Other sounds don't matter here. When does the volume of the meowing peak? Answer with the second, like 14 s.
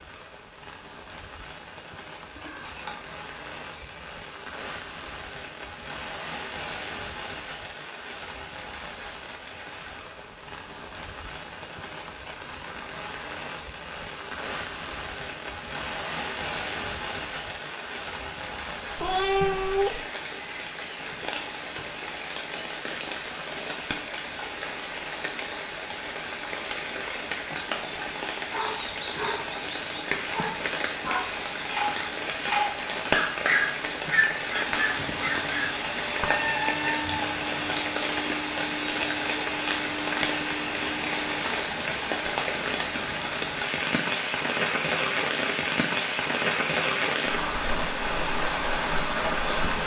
19 s.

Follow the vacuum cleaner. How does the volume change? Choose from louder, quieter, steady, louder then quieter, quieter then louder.
steady.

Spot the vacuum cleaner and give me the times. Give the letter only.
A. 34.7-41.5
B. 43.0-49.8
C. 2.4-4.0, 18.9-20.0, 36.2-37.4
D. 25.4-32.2
A.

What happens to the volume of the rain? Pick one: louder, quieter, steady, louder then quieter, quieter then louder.
louder.